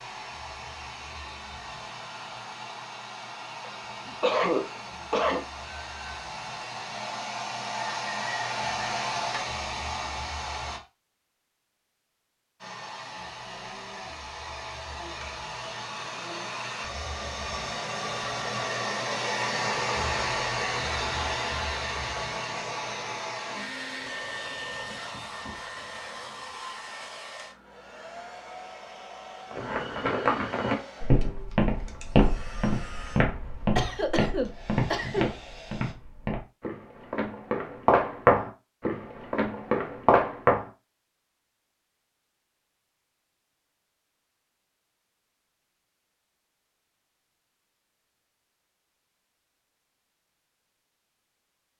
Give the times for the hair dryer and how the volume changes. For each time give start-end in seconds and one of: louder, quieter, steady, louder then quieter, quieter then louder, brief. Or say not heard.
0.0-10.8 louder
12.6-36.0 louder then quieter.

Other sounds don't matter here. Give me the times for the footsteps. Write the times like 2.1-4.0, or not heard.
29.5-40.6.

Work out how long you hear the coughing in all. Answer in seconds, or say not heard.
3 s.